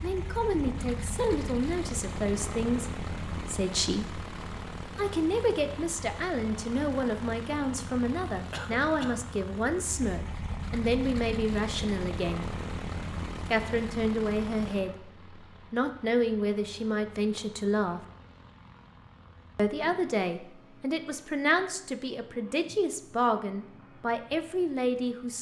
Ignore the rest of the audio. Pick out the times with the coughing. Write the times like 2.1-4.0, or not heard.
8.5-9.2.